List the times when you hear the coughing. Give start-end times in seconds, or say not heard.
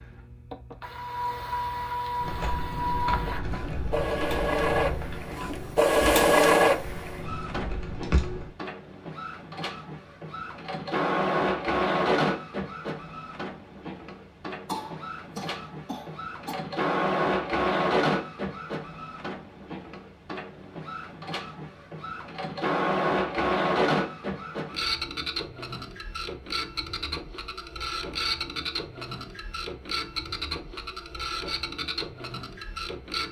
14.7-16.6.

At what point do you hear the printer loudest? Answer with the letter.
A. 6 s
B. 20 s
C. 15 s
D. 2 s
A.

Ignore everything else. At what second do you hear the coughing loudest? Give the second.
15 s.